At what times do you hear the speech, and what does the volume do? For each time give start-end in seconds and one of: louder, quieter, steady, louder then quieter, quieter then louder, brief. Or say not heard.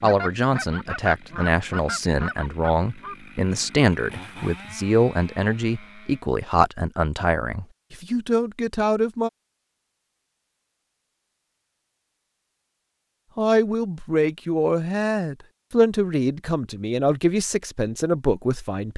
0.0-9.3 steady
13.3-18.9 steady.